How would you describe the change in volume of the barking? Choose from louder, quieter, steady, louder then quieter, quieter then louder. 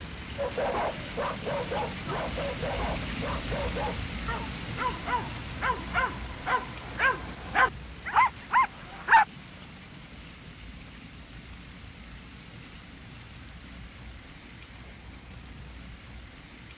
louder.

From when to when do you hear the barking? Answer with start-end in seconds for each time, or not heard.
0.3-9.2.